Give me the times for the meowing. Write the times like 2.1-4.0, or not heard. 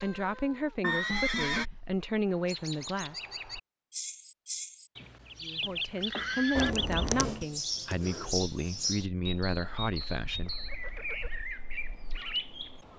6.5-7.5.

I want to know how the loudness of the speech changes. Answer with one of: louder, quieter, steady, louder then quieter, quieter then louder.
steady.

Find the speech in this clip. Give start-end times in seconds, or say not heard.
0.0-3.2, 5.4-10.6.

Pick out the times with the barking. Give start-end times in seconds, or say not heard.
not heard.